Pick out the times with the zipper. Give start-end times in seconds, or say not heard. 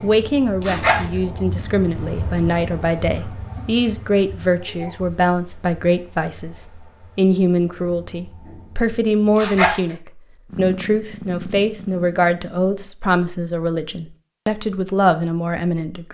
0.6-1.1, 9.3-9.8.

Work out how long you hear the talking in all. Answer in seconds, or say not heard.
16 s.